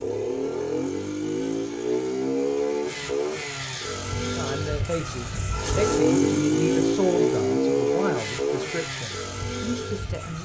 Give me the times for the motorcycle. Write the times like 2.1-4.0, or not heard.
0.0-10.3.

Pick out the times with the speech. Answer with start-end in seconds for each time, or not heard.
4.2-10.3.